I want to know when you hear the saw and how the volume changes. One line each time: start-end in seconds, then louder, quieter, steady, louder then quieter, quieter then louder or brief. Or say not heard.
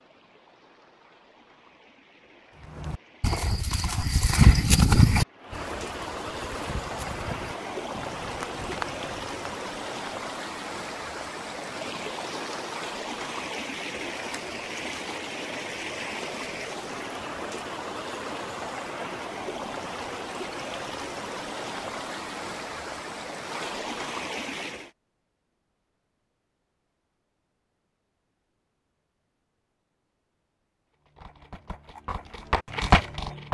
not heard.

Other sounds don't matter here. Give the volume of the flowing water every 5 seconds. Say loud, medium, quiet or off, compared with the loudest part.
quiet, loud, loud, loud, loud, off, off.